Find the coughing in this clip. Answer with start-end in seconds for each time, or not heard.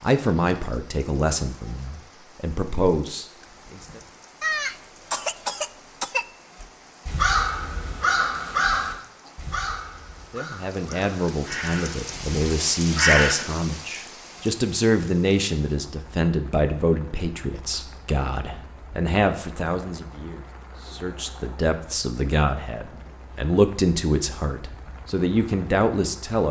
4.4-6.2.